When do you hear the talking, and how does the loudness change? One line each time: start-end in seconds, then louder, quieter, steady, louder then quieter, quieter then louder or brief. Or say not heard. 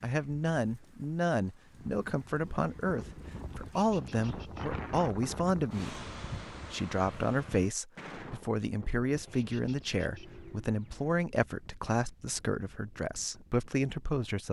0.0-14.4 steady.